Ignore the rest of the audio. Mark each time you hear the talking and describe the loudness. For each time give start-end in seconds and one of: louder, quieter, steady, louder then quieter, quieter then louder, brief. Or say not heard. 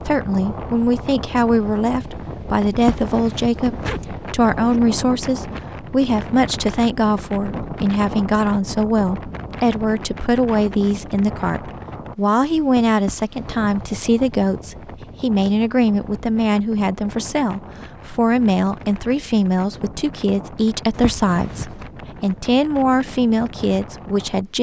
0.0-24.5 steady.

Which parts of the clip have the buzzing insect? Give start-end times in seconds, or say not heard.
not heard.